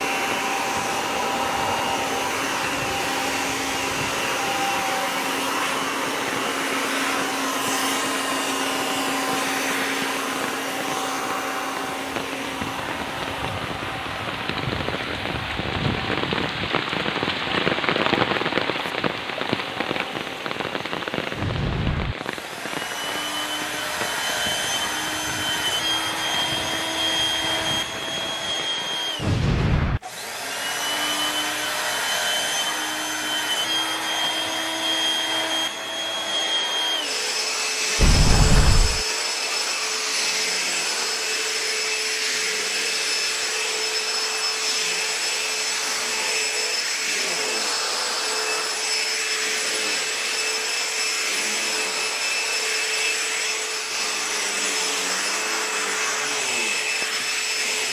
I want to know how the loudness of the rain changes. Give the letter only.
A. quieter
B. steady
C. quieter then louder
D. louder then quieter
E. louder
D.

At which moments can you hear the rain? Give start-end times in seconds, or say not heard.
0.1-29.2.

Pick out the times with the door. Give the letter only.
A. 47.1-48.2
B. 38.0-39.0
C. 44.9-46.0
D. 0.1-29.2
B.